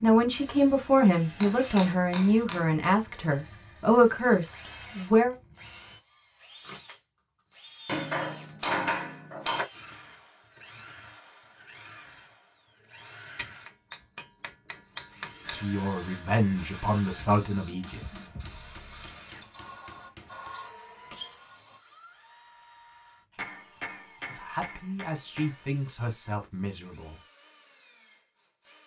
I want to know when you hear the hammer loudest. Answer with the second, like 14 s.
9 s.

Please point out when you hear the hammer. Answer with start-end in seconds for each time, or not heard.
1.4-2.9, 7.8-9.7, 13.3-15.7, 17.8-20.5, 23.4-25.6.